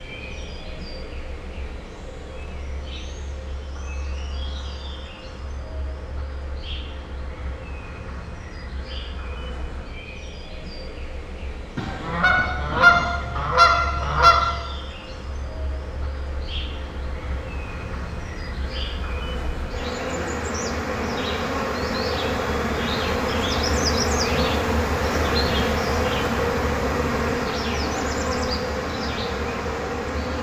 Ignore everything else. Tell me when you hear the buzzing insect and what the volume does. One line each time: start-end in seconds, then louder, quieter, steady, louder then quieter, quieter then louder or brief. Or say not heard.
0.0-30.3 louder.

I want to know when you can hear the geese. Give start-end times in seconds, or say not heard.
11.8-14.6.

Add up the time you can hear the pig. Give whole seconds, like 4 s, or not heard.
not heard.